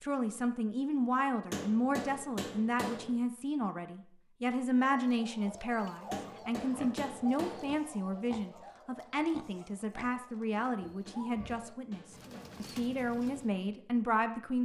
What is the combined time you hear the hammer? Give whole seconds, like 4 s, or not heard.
5 s.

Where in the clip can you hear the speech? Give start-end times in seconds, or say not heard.
0.0-14.6.